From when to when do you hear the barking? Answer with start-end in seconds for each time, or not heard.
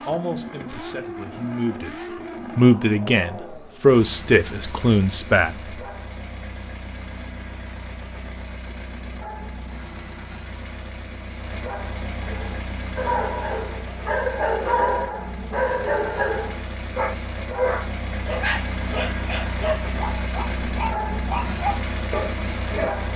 12.2-23.1.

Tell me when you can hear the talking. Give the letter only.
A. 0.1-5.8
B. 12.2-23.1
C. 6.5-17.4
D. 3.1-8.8
A.